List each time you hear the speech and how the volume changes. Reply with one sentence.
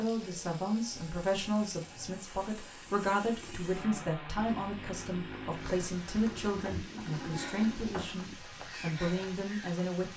The speech can be heard from 0.0 to 10.1 s, at a steady volume.